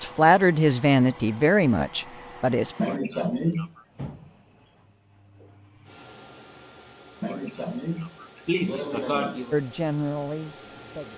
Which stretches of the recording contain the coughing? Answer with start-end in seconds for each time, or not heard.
2.8-3.7, 7.2-9.6.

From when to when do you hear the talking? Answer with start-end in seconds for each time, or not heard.
0.0-2.8, 9.5-11.1.